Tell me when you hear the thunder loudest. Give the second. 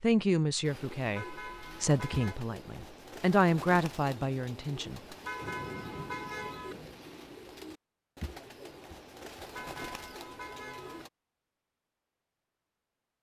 6 s.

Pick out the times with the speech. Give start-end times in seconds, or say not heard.
0.0-5.0.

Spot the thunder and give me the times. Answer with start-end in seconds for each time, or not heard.
5.4-6.8.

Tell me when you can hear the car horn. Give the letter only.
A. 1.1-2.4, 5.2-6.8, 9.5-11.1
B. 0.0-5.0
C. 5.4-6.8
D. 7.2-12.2
A.